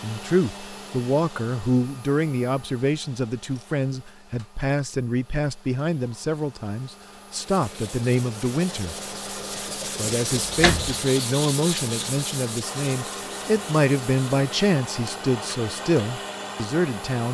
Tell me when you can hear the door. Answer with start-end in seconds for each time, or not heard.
10.3-11.0.